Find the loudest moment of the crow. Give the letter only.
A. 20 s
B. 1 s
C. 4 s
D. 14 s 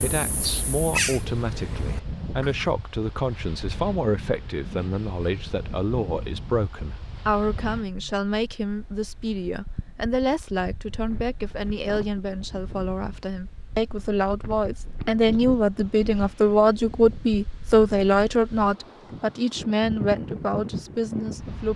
B.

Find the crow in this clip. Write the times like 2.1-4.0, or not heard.
0.0-2.7.